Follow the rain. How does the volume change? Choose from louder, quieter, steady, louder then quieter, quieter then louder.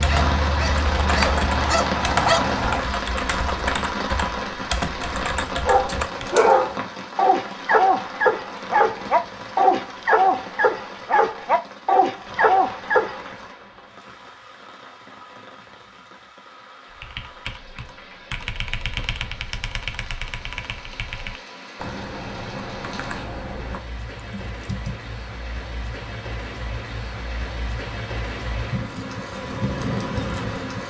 quieter then louder.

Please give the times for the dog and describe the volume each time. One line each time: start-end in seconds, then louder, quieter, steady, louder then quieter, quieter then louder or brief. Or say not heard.
0.0-2.9 brief
5.7-13.3 steady.